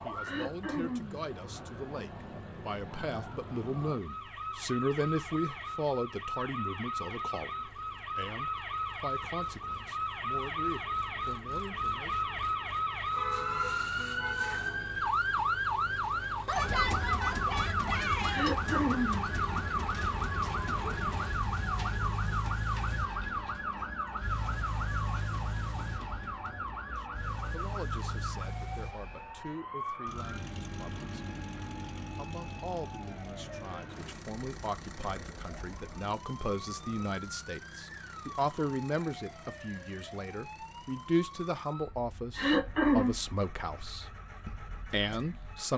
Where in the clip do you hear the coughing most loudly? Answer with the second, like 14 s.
43 s.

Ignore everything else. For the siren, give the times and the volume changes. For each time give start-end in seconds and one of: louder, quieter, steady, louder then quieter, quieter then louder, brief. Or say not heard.
0.0-45.7 louder then quieter.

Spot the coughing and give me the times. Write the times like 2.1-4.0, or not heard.
0.2-1.1, 18.3-19.2, 42.4-43.1.